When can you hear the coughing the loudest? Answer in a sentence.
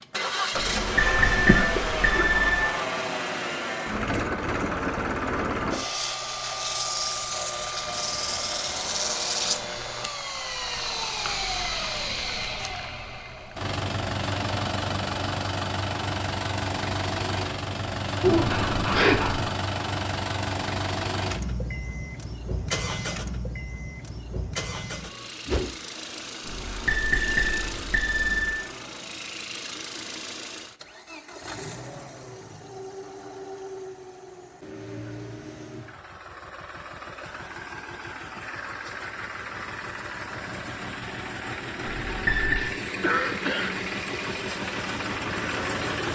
The loudest moment of the coughing is at 19 seconds.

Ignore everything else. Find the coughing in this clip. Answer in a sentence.
The coughing can be heard from 1.1 to 2.3 s, from 18.2 to 19.5 s and from 43.0 to 43.8 s.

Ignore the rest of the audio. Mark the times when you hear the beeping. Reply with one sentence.
The beeping can be heard from 0.5 to 2.6 s, from 26.4 to 28.6 s and from 41.8 to 42.6 s.